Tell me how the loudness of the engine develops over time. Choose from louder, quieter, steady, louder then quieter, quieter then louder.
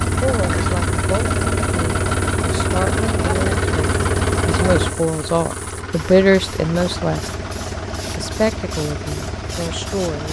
quieter.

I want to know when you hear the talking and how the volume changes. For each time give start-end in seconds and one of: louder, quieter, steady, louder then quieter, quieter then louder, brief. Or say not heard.
0.1-7.5 louder
8.1-10.2 brief.